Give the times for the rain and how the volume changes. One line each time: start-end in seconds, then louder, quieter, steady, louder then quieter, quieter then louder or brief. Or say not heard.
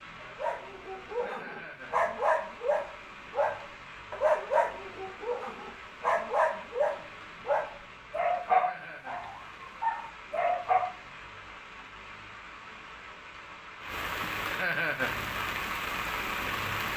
0.0-16.9 louder.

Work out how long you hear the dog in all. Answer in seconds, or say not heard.
11 s.